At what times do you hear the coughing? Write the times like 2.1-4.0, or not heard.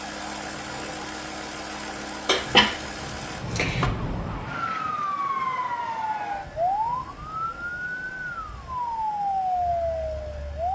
2.2-3.9.